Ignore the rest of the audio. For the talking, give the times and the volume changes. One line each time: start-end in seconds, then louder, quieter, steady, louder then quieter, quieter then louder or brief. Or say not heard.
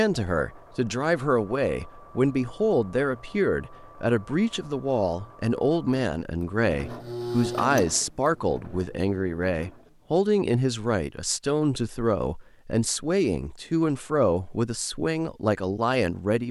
0.0-16.4 steady.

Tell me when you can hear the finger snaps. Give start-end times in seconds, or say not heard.
not heard.